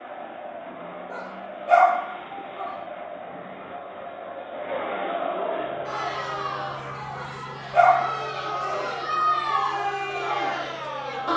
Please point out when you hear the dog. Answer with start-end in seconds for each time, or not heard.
1.1-2.8, 7.2-8.8.